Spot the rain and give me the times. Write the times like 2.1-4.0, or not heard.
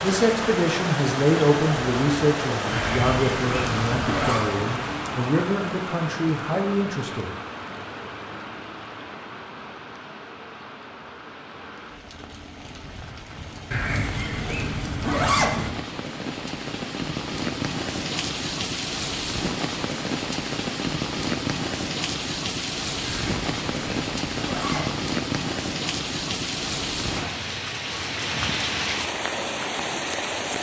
0.0-30.5.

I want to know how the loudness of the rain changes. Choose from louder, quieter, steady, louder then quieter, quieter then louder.
quieter then louder.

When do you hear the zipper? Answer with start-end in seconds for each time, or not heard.
2.7-4.5, 13.7-15.7, 23.0-25.1.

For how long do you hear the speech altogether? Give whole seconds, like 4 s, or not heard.
7 s.